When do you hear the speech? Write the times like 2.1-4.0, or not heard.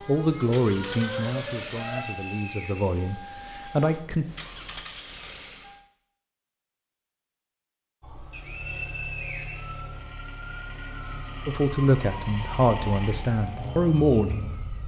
0.1-4.2, 11.4-14.7.